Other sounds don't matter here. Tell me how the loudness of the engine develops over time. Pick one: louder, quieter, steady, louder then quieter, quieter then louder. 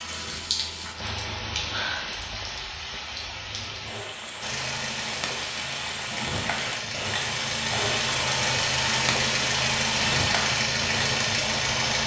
louder.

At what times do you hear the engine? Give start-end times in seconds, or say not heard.
4.4-12.0.